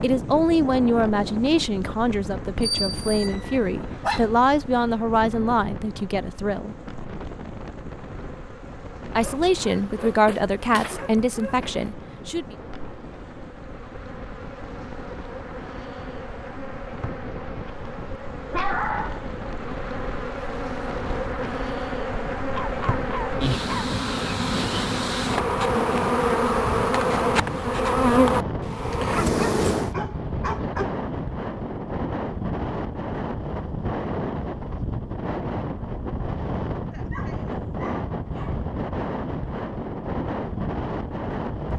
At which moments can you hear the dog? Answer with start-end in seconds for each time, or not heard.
2.6-4.2, 9.2-11.8, 18.5-19.2, 22.5-23.9, 29.4-30.9, 36.9-38.7.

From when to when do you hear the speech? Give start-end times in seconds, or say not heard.
0.0-6.8, 9.2-12.6.